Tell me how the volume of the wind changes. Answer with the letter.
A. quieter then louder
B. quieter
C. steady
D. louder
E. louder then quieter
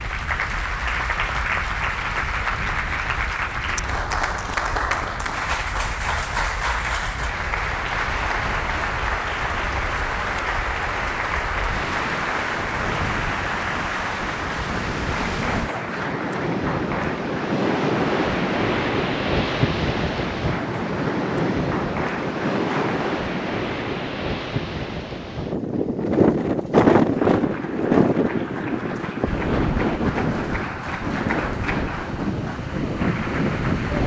D.